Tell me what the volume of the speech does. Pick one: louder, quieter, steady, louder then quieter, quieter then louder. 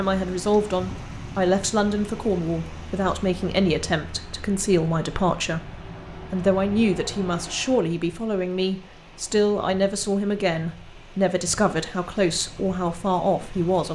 steady.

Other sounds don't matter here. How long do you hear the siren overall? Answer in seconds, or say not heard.
not heard.